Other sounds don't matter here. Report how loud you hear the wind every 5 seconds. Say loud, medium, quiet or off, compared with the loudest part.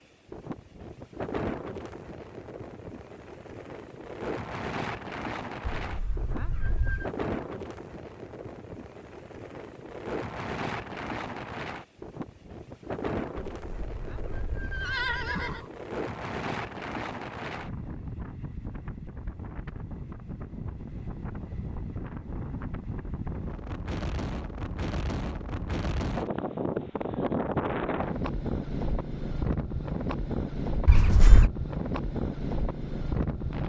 medium, medium, medium, medium, medium, loud, loud.